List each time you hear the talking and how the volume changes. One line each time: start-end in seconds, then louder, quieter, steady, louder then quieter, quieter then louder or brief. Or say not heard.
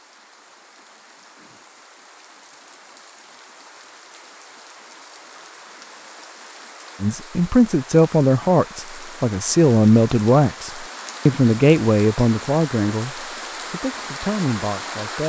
7.0-15.2 quieter.